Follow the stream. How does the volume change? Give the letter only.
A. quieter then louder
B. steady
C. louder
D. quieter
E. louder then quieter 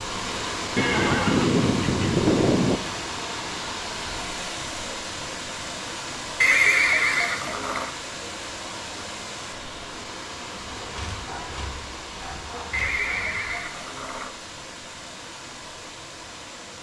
D.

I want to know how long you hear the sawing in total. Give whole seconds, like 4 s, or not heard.
3 s.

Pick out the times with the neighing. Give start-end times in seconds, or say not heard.
0.8-2.8, 6.4-7.9, 12.7-14.3.